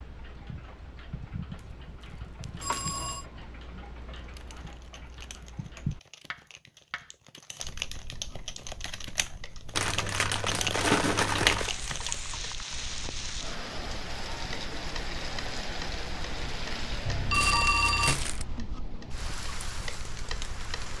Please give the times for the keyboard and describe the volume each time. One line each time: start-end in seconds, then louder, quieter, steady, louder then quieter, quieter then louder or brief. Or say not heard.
4.2-12.2 louder.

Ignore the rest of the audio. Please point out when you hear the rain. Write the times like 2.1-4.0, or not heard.
10.4-20.9.